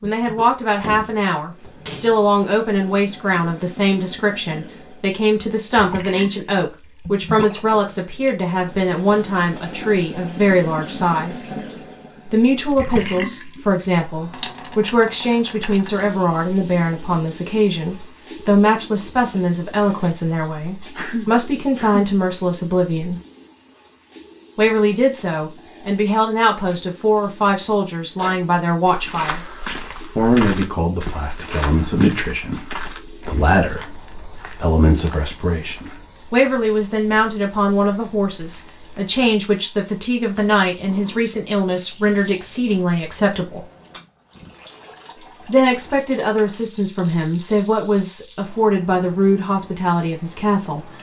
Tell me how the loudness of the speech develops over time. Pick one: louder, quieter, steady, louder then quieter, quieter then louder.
steady.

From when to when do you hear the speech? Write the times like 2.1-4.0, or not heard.
0.0-11.4, 12.2-23.1, 24.6-29.4, 30.1-43.6, 45.5-50.9.